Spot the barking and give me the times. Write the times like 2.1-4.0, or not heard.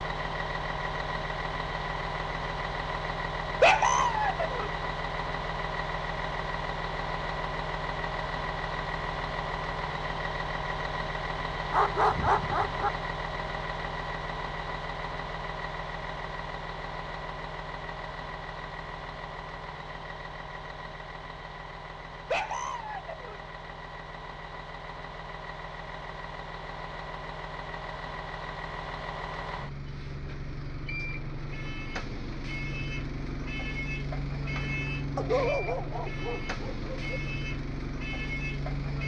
3.6-4.7, 11.7-12.9, 22.3-23.4, 35.1-37.0.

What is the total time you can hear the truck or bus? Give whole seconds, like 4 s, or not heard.
39 s.